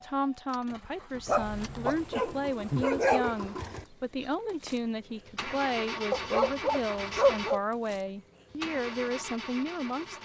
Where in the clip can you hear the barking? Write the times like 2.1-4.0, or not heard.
1.2-3.4, 6.1-7.6.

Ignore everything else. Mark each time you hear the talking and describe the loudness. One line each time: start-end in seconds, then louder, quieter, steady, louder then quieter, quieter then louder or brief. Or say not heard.
0.0-10.2 steady.